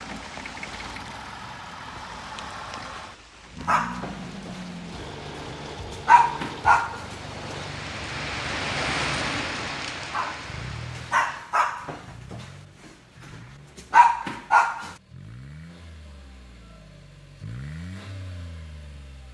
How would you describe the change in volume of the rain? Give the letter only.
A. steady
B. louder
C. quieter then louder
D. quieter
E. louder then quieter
B.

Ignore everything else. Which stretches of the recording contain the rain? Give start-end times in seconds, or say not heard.
0.0-11.4.